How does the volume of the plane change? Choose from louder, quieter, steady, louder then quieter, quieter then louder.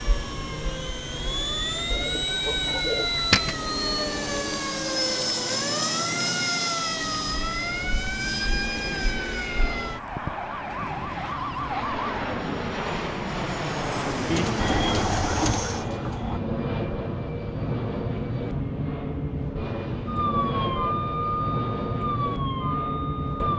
steady.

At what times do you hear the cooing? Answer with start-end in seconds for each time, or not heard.
1.9-3.5, 14.3-16.2.